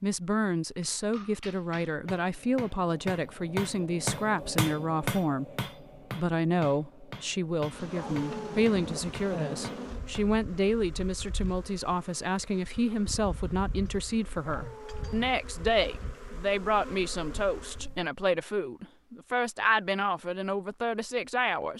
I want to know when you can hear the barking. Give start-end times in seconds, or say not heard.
7.9-8.6, 14.4-15.2.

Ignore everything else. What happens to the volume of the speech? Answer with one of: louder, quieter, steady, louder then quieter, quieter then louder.
steady.